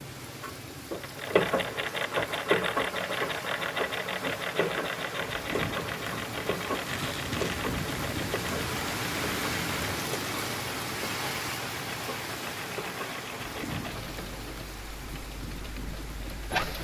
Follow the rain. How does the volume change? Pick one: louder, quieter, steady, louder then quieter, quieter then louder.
louder then quieter.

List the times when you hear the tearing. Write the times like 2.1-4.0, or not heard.
6.8-7.6.